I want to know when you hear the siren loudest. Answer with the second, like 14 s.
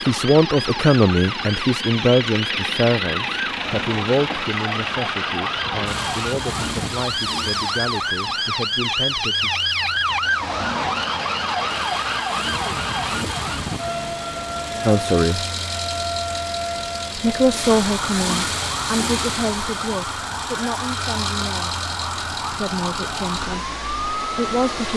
10 s.